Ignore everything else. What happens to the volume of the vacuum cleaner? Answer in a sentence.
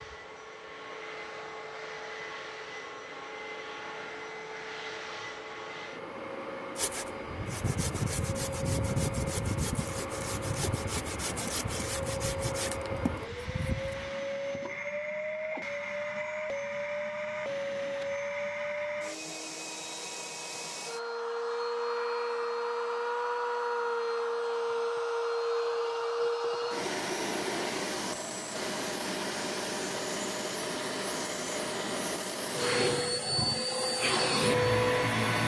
The loudness of the vacuum cleaner goes up.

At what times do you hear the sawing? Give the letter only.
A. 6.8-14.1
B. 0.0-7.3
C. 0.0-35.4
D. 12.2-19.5
A.